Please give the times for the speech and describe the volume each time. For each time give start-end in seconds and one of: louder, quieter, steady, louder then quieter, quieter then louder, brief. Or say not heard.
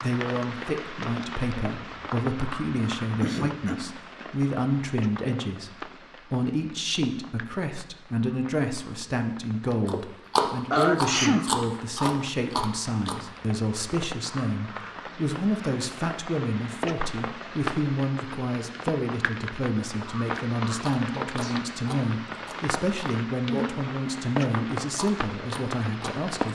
0.0-26.4 steady.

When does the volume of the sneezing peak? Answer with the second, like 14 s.
11 s.